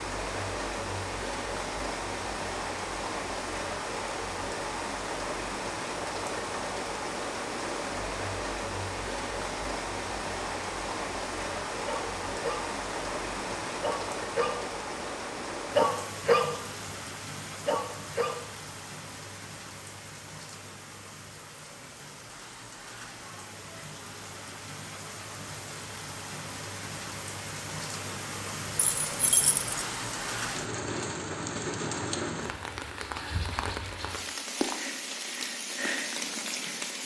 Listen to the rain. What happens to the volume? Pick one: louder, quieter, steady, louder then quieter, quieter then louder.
quieter then louder.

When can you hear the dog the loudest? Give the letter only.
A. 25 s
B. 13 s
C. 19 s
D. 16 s
D.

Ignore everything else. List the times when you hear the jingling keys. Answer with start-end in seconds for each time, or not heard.
28.8-29.7.